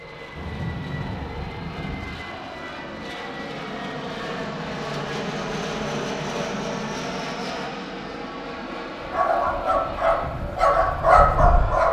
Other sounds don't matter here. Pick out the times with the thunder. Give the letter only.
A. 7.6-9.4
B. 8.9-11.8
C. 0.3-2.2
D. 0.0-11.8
C.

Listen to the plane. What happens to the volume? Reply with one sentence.
The volume of the plane goes up, then down.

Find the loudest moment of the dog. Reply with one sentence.
The volume of the dog peaks at 11 seconds.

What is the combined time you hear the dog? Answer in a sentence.
You can hear the dog for 3 seconds altogether.